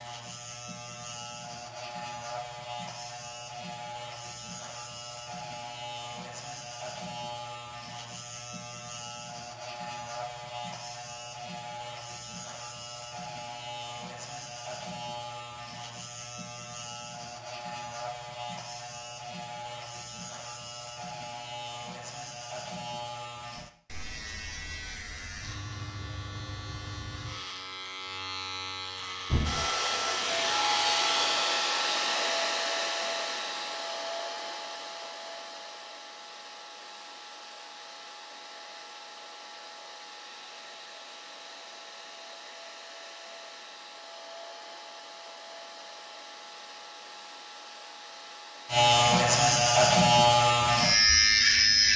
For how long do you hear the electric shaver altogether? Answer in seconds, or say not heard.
35 s.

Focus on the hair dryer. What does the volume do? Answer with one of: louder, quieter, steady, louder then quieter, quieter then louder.
quieter.